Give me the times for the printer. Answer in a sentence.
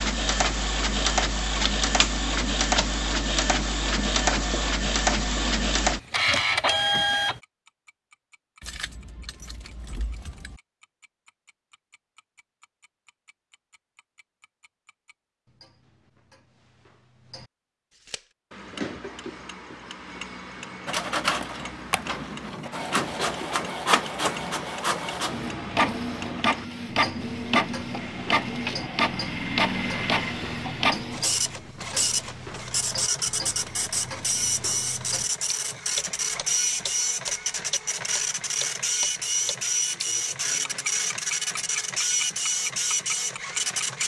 The printer can be heard from 0.0 to 7.4 s and from 20.9 to 44.0 s.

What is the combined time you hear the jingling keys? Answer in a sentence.
The jingling keys can be heard for 2 seconds in total.